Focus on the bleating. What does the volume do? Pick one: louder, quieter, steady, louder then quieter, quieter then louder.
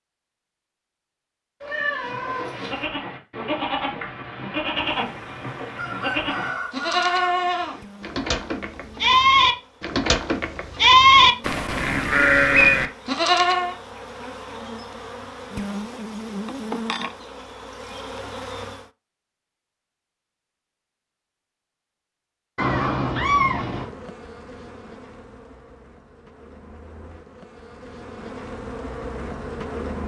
louder.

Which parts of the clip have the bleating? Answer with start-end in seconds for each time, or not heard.
2.0-13.8.